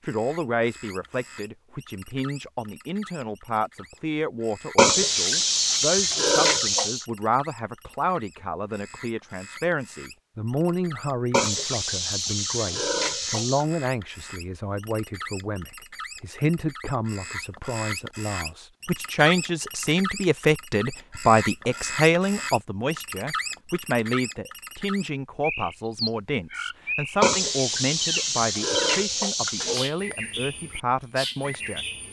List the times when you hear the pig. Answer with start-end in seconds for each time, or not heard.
4.8-7.0, 11.3-13.7, 27.2-29.9.